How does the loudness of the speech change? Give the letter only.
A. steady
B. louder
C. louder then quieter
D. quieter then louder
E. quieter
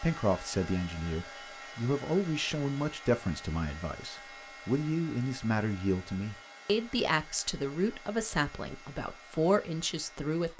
A.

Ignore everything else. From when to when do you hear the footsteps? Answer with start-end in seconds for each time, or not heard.
not heard.